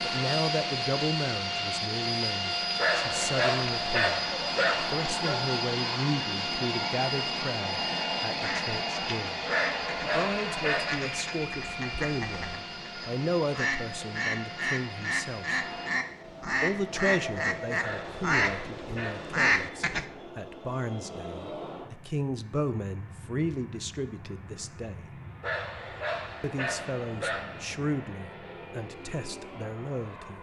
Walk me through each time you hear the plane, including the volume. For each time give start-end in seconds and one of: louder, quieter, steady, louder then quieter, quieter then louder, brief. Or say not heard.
0.0-30.3 quieter.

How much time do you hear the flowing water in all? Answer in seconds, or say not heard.
not heard.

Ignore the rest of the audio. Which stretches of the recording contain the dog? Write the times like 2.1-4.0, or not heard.
2.8-5.5, 9.4-11.1, 17.8-19.4, 25.4-27.8.